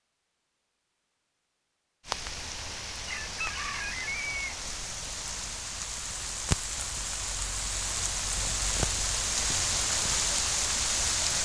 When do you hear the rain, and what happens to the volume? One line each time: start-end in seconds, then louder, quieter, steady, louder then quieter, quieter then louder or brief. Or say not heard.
2.0-11.4 louder.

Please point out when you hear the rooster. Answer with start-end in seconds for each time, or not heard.
3.0-4.4.